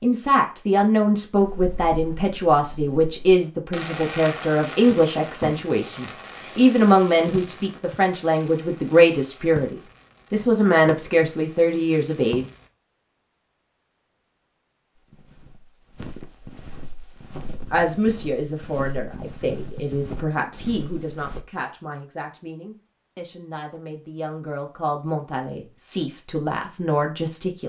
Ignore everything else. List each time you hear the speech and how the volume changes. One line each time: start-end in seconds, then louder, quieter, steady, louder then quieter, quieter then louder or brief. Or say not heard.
0.0-12.4 steady
17.7-27.6 quieter then louder.